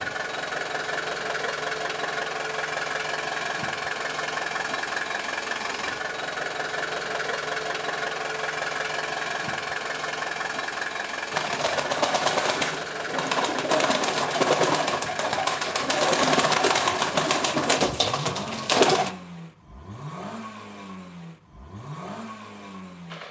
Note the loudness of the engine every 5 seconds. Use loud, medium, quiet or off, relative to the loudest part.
loud, loud, loud, medium, medium.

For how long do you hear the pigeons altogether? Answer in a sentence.
You can hear the pigeons for 8 seconds altogether.